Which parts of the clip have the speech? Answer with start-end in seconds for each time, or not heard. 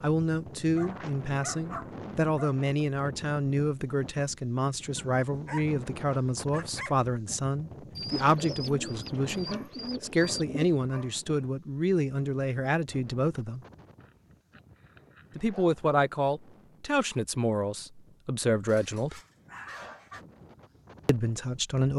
0.0-13.6, 15.3-19.2, 21.1-21.9.